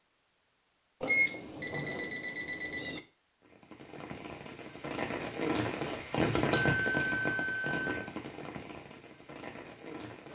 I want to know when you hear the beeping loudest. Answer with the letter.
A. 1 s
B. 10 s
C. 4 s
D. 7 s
A.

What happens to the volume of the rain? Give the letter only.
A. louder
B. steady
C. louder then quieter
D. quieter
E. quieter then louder
C.